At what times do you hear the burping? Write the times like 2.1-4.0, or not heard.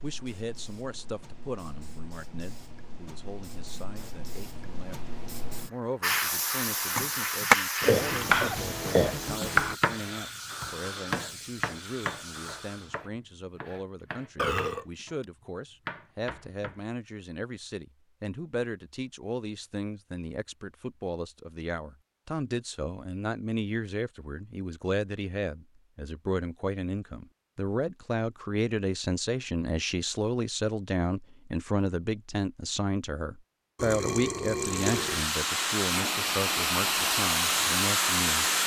7.8-9.2, 14.3-14.8, 33.8-35.3.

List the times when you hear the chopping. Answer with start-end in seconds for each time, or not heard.
6.9-16.8.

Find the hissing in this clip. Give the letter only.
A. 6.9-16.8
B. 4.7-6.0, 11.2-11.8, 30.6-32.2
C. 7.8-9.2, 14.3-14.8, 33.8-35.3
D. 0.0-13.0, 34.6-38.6
D.